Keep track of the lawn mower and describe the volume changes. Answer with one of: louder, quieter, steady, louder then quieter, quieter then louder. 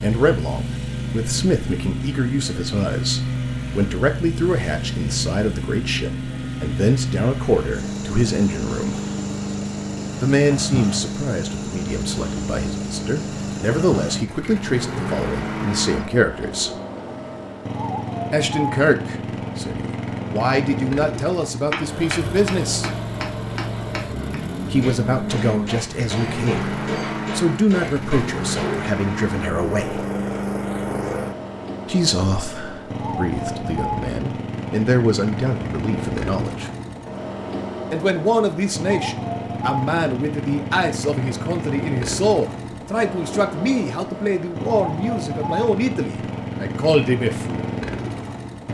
steady.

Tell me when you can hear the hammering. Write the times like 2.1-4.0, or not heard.
21.6-28.8.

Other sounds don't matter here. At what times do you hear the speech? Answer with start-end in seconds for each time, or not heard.
0.0-9.0, 10.2-16.7, 18.3-22.9, 24.7-30.1, 31.9-36.7, 37.9-47.6.